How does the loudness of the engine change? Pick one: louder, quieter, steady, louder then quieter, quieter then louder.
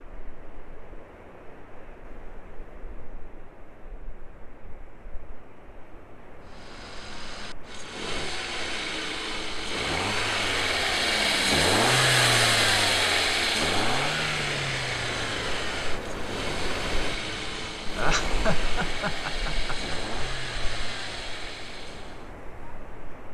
louder then quieter.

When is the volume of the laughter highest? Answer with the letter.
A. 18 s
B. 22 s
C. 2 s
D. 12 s
A.